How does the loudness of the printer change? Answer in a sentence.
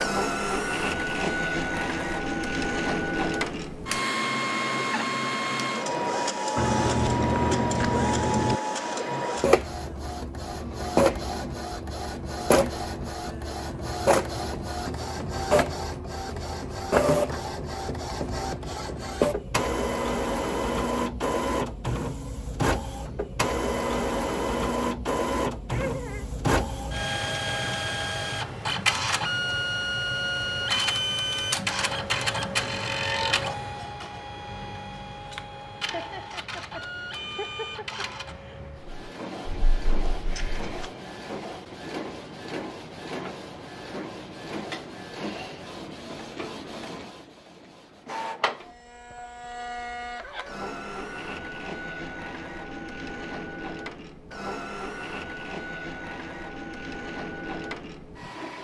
The loudness of the printer goes down.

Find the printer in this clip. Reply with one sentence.
The printer can be heard from 0.0 to 58.5 s.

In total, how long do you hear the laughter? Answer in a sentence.
The laughter can be heard for 3 seconds in total.